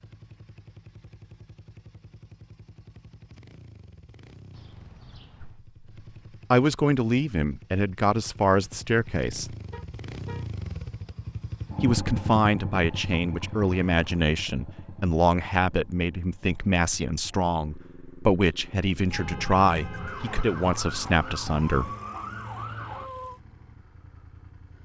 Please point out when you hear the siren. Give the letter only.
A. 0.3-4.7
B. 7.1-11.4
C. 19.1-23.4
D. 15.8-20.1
C.